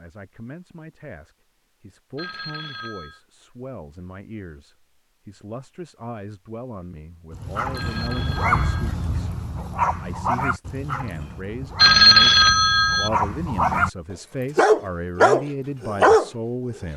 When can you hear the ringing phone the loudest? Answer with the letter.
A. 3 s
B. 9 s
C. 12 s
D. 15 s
C.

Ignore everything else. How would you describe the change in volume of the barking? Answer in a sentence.
The loudness of the barking goes down, then up.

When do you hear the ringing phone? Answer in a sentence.
The ringing phone can be heard from 2.1 to 3.2 s, from 7.8 to 8.9 s and from 11.8 to 13.1 s.